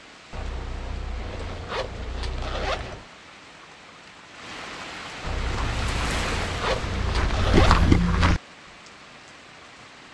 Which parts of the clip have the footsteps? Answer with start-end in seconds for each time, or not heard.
5.3-8.4.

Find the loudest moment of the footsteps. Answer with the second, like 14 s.
8 s.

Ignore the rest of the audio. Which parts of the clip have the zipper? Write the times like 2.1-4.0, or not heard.
0.3-3.0, 5.2-7.8.